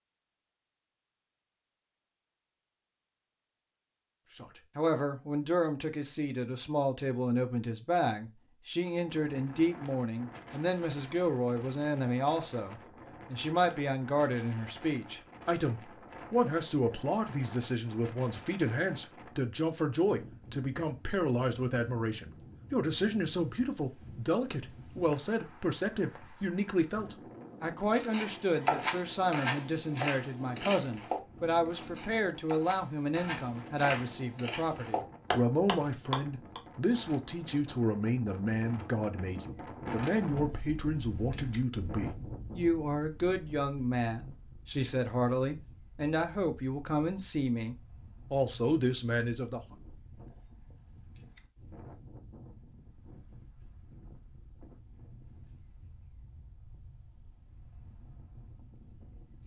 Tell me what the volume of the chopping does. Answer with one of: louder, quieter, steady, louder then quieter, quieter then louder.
quieter then louder.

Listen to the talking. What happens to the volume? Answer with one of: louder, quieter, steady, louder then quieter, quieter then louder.
steady.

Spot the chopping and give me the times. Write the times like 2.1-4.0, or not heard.
27.9-36.6.